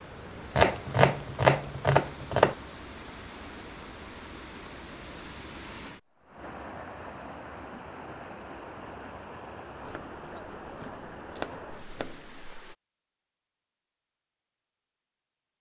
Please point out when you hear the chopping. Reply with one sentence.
The chopping can be heard from 0.6 to 2.5 s and from 9.8 to 12.6 s.